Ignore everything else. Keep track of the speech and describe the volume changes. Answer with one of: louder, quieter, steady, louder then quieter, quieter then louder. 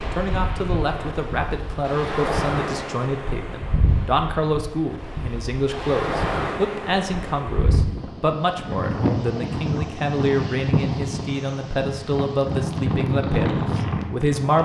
steady.